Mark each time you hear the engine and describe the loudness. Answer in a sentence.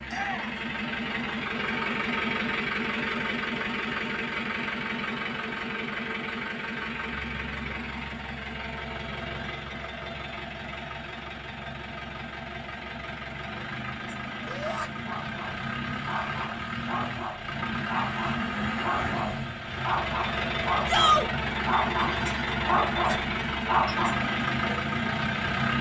You can hear the engine from 0.0 to 25.7 s, getting quieter then louder.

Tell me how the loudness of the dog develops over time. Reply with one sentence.
The volume of the dog goes up.